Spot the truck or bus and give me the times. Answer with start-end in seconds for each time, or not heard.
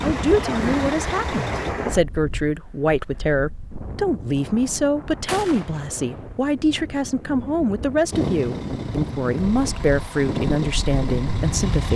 0.0-1.8, 8.1-11.9.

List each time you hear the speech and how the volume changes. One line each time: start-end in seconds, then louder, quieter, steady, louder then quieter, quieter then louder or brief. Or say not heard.
0.0-11.9 steady.